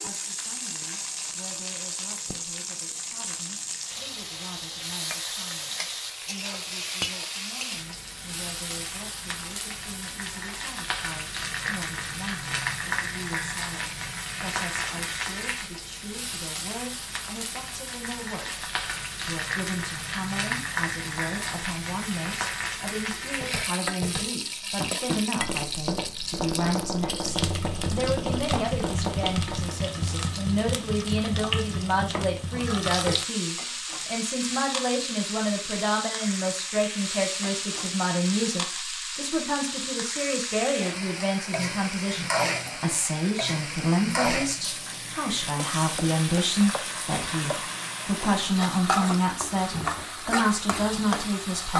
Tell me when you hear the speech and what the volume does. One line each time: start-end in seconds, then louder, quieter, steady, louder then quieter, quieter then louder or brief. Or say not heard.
0.0-51.7 louder.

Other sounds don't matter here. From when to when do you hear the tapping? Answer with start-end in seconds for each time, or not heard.
23.4-29.8.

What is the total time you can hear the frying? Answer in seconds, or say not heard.
52 s.